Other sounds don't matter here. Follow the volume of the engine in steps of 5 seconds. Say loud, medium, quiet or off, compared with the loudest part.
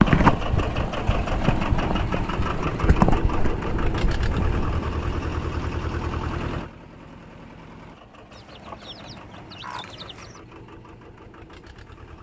loud, medium, quiet.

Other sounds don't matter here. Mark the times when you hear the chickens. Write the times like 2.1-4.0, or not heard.
8.3-10.4.